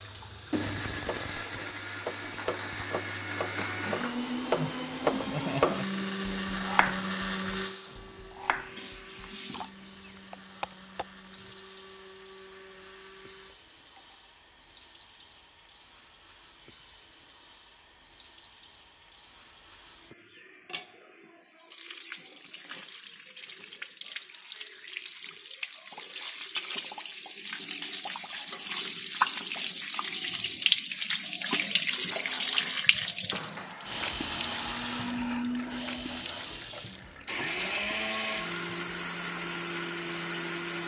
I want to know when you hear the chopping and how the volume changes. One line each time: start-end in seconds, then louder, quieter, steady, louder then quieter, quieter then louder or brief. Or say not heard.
1.0-11.6 louder then quieter.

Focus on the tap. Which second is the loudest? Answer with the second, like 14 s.
31 s.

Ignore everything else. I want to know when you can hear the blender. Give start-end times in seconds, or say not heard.
0.0-14.1, 31.9-40.8.